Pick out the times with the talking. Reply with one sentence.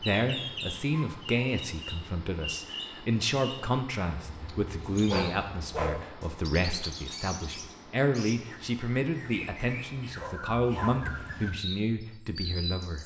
You can hear the talking from 0.0 to 13.0 s.